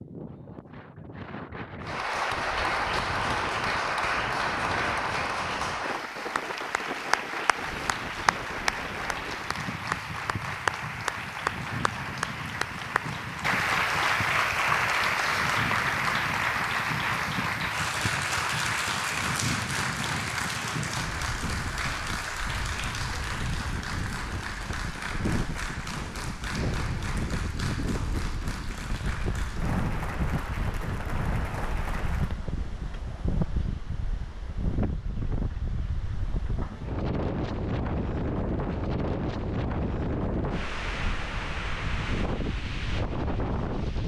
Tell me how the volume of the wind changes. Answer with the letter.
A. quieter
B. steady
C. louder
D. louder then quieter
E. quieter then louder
C.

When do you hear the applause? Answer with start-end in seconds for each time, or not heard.
1.8-32.4.